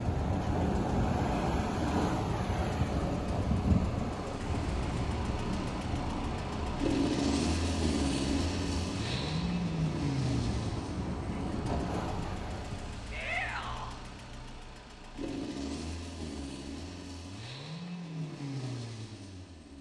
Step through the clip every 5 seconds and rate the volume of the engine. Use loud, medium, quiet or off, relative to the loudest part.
medium, loud, medium, medium.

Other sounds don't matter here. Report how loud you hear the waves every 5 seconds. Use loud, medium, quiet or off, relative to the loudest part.
loud, medium, medium, off.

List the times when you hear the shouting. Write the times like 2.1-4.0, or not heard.
13.1-13.9.